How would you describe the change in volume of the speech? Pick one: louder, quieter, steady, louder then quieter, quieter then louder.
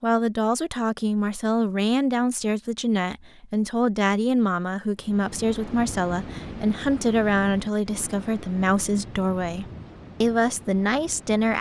steady.